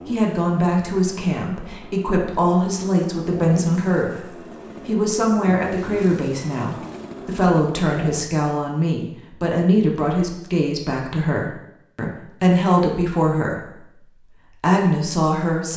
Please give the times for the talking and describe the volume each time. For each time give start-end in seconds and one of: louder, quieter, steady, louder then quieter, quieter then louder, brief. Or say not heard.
0.1-15.7 steady.